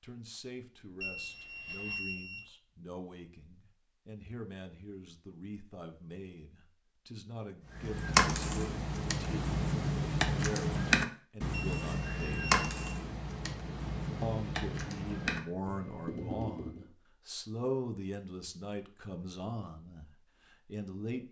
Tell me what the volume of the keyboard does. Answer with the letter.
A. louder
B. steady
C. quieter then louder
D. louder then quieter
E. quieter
E.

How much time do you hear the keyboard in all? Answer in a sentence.
You can hear the keyboard for 9 seconds altogether.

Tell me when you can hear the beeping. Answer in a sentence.
The beeping can be heard from 1.0 to 2.5 s and from 11.5 to 12.8 s.